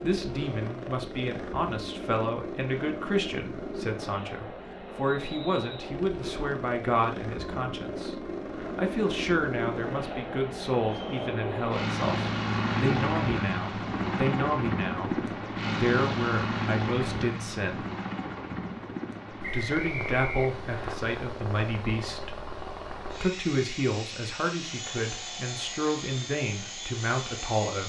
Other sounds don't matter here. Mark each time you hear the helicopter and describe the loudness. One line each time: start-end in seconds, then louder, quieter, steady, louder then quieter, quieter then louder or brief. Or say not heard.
0.0-27.8 louder then quieter.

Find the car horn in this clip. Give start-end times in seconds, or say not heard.
not heard.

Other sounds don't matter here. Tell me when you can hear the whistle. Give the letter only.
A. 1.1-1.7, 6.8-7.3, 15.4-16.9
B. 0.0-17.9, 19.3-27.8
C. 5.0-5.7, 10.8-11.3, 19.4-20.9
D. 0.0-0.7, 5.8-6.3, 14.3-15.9
C.